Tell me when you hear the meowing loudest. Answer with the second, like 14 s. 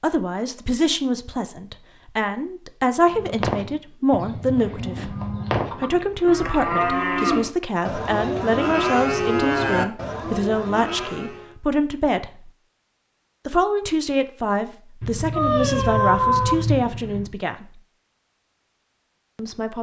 16 s.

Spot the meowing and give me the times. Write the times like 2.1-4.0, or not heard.
5.7-7.0, 15.0-17.2.